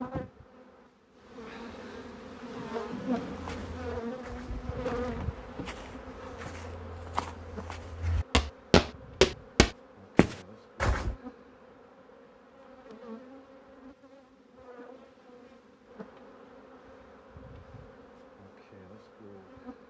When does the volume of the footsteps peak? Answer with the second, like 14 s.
9 s.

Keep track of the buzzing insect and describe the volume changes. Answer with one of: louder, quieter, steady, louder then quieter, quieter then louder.
quieter.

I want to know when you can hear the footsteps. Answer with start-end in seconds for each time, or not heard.
3.2-11.2.